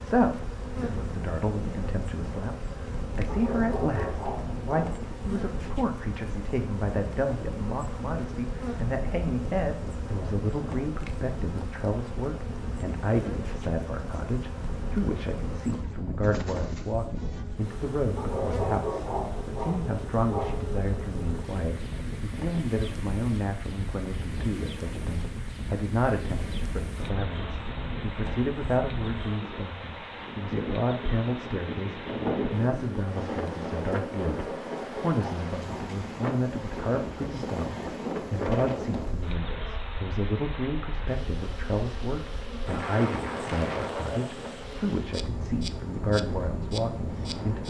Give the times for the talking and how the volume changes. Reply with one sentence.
The talking can be heard from 0.0 to 47.6 s, at a steady volume.